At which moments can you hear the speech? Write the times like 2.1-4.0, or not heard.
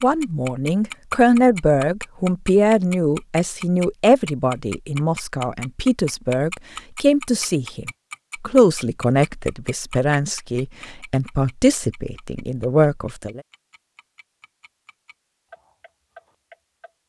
0.0-13.4.